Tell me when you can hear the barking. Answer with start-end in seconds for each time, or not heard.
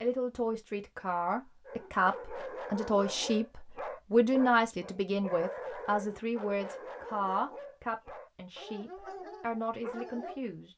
1.6-10.4.